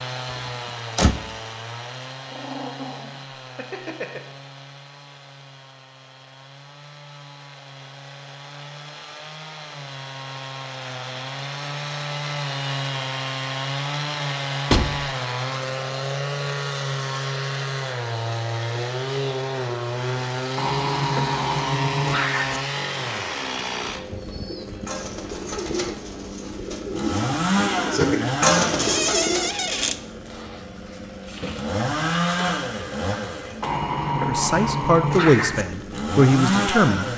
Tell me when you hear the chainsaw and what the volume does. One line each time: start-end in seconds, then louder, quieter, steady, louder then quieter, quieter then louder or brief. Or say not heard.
0.0-37.1 louder.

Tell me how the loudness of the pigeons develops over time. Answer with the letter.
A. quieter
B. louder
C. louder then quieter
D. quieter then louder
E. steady
B.